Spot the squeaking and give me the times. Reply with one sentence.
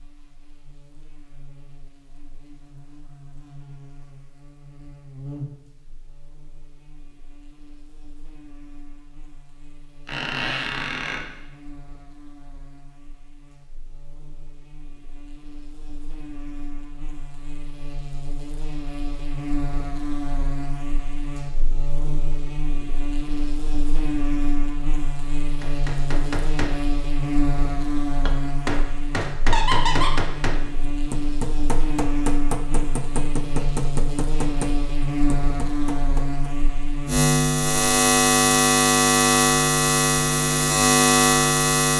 You can hear the squeaking from 10.1 to 11.2 s and from 29.5 to 30.1 s.